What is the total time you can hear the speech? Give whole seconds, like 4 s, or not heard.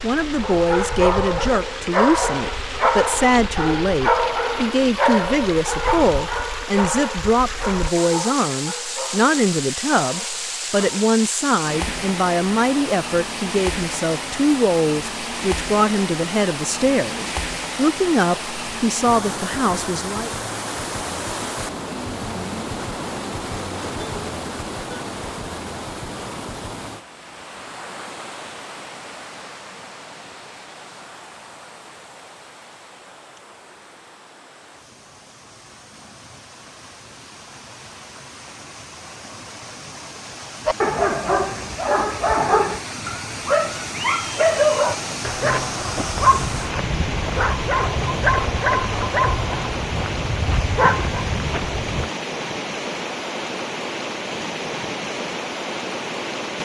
20 s.